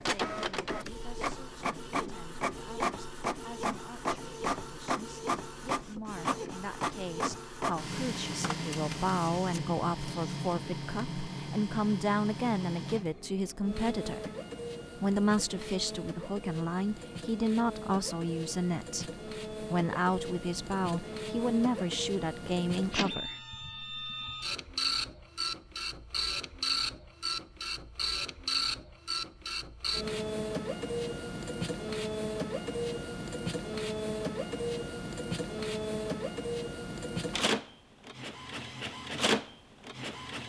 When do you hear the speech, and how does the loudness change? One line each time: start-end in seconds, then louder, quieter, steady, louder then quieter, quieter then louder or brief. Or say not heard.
0.0-14.3 louder
14.9-23.4 steady.